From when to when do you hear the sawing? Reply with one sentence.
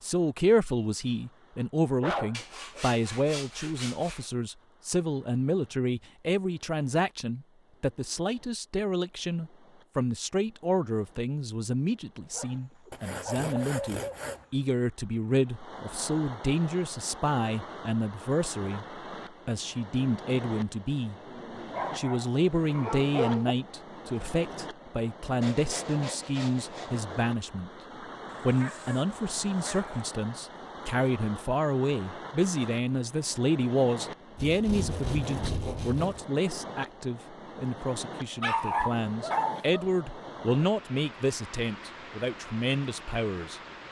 The sawing can be heard from 2.3 to 4.3 s, from 12.9 to 14.4 s, from 25.4 to 27.1 s and from 34.4 to 36.2 s.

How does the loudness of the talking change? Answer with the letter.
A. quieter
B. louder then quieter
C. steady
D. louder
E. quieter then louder
C.